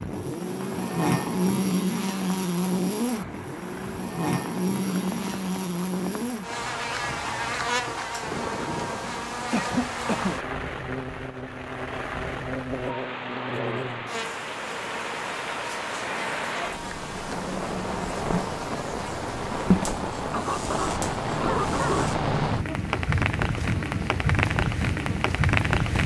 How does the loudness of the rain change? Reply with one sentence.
The loudness of the rain goes up.